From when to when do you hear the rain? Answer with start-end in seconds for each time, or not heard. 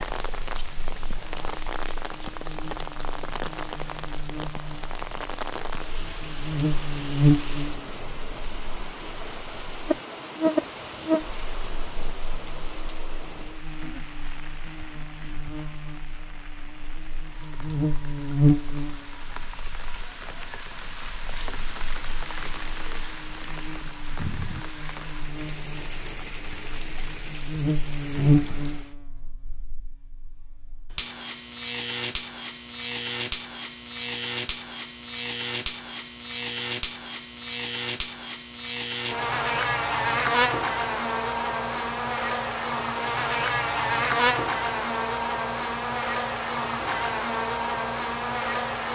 0.0-28.9.